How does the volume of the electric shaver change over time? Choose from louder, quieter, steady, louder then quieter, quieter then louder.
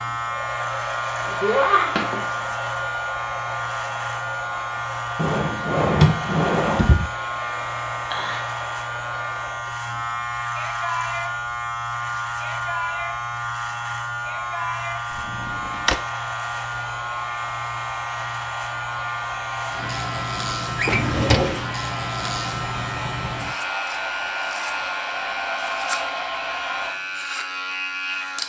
steady.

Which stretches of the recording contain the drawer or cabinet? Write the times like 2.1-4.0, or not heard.
5.2-7.1, 15.2-16.0, 20.8-21.6.